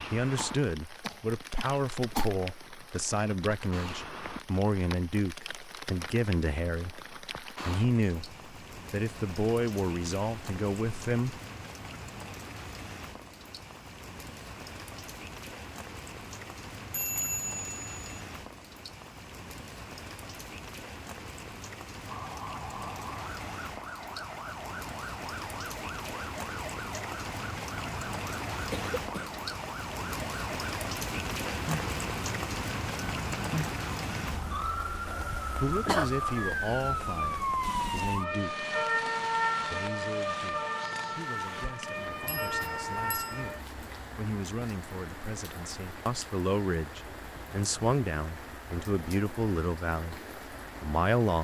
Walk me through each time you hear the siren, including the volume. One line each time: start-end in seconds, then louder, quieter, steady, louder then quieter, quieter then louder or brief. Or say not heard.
22.0-43.6 louder.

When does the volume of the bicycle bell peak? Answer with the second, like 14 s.
17 s.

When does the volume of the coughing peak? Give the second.
36 s.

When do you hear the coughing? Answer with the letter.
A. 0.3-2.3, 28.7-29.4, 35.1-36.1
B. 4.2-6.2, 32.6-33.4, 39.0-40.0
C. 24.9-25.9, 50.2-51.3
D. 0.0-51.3
A.